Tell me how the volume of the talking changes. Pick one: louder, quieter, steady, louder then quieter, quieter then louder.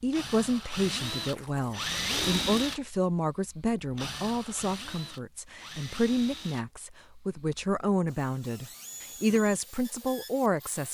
steady.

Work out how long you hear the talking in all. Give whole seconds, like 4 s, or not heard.
11 s.